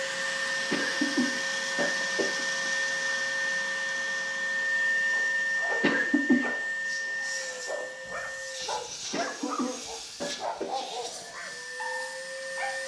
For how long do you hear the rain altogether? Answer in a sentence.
The rain can't be heard in this clip.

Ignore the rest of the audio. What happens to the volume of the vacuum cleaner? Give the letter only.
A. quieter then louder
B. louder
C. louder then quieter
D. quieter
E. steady
D.